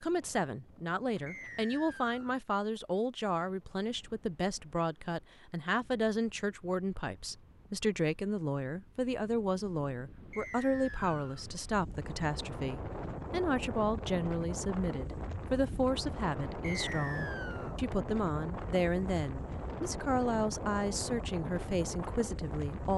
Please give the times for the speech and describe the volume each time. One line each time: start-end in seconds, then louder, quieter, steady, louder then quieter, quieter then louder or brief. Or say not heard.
0.0-22.9 steady.